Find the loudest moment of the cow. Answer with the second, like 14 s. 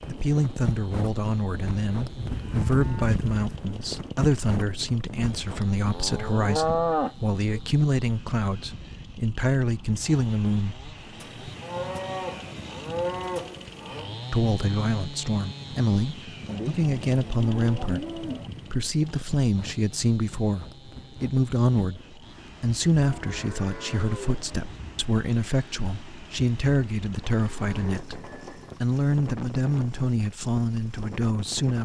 7 s.